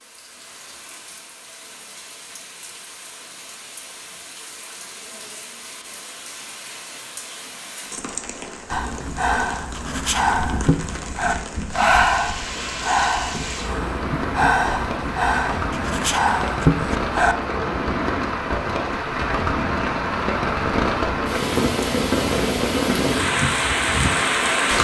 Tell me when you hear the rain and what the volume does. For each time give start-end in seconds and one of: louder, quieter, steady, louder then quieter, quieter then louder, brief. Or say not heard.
0.0-24.7 louder.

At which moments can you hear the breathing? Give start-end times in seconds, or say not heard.
8.7-17.4.